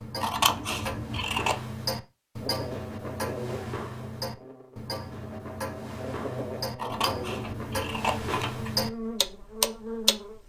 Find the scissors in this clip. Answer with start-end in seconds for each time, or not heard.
0.2-1.6, 6.8-8.7.